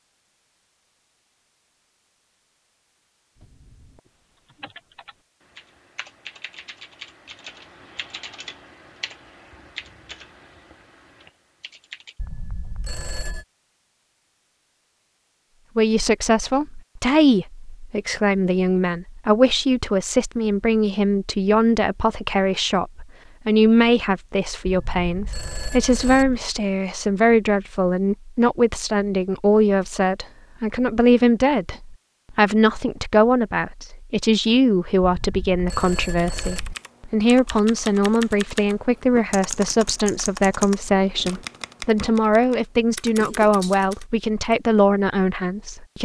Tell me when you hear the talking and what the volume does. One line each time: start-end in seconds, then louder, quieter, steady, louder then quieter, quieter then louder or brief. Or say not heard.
15.8-46.0 steady.